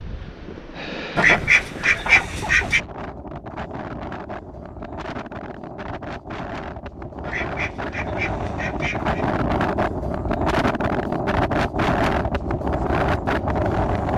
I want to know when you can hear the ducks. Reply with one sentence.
You can hear the ducks from 1.1 to 2.8 s and from 7.2 to 9.3 s.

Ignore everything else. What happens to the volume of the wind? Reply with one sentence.
The volume of the wind goes up.